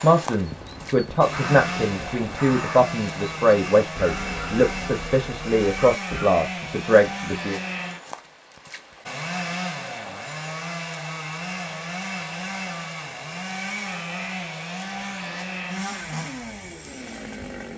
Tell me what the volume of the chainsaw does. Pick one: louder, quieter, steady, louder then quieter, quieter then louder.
steady.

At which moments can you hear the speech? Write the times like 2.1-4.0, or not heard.
0.0-7.6.